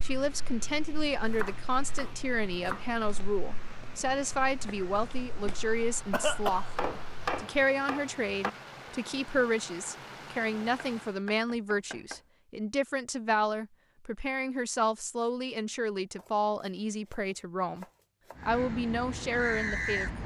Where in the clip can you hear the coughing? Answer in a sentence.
The coughing can be heard from 6.1 to 6.7 s.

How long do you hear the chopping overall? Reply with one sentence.
You can hear the chopping for 7 seconds altogether.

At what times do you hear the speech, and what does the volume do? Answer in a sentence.
The speech can be heard from 0.0 to 20.2 s, at a steady volume.